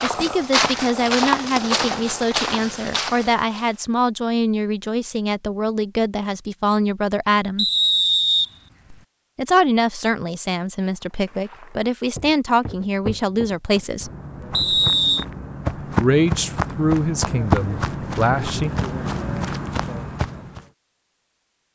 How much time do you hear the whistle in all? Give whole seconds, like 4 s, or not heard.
2 s.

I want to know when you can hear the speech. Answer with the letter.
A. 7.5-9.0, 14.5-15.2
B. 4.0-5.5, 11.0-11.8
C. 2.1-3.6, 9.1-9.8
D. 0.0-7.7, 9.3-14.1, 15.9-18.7
D.